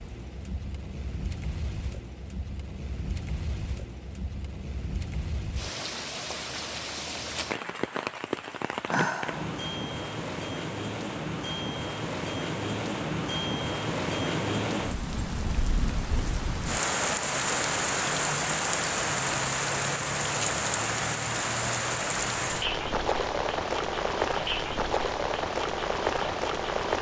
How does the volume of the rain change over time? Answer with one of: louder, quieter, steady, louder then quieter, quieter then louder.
louder.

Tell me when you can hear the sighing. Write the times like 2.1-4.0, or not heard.
8.8-9.6.